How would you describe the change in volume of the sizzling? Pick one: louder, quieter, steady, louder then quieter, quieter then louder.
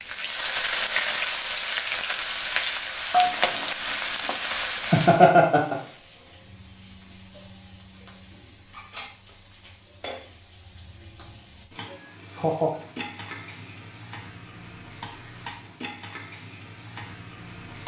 quieter.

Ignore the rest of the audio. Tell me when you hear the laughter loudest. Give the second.
5 s.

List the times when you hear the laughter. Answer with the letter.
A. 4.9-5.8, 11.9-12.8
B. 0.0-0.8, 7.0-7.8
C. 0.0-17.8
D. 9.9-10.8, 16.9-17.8
A.